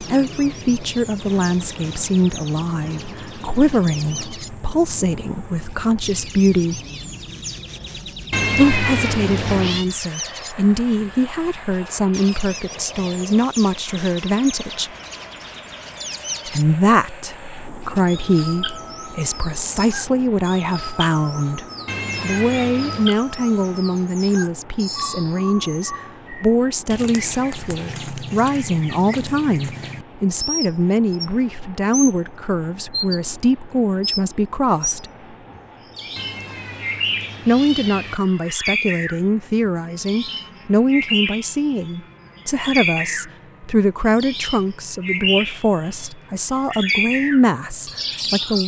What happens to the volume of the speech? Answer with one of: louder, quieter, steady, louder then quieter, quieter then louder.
steady.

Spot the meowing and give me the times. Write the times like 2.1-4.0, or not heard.
8.3-9.8, 21.9-23.1, 36.1-38.1.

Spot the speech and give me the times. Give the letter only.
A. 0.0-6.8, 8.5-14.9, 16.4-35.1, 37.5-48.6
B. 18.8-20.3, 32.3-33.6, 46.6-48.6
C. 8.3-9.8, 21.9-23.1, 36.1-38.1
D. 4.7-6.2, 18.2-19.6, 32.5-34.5
A.